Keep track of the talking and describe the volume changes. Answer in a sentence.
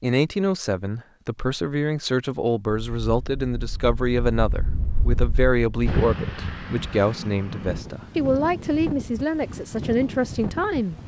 The volume of the talking stays about the same.